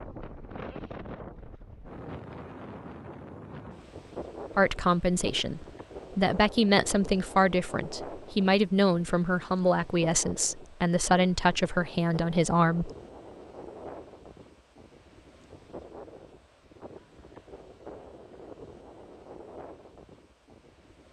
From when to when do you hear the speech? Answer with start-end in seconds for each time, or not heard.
4.5-12.9.